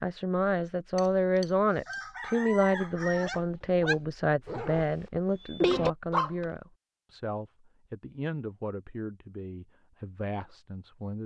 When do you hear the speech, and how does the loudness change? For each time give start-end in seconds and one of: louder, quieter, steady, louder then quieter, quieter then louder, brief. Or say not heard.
0.0-11.2 quieter.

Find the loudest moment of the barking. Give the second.
6 s.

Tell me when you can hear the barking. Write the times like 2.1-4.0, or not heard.
3.1-4.8, 5.6-6.5.